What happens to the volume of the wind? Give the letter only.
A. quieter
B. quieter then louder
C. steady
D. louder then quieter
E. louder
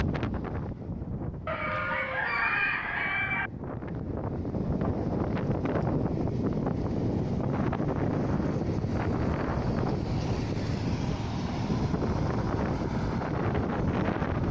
E.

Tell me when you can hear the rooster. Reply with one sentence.
You can hear the rooster from 1.4 to 3.5 s.